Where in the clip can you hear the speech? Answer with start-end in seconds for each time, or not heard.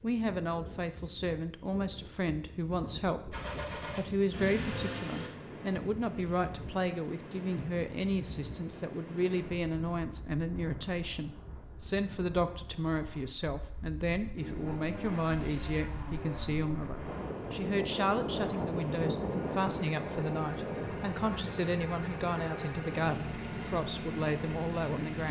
0.0-3.4, 4.0-25.2.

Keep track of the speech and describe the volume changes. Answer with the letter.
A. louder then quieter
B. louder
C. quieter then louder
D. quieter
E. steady
E.